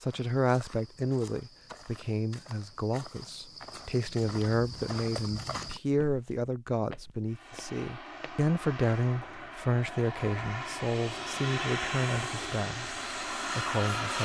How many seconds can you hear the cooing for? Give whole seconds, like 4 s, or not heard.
not heard.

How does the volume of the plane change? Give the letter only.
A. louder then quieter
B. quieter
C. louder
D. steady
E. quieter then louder
C.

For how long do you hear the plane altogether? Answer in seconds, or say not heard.
7 s.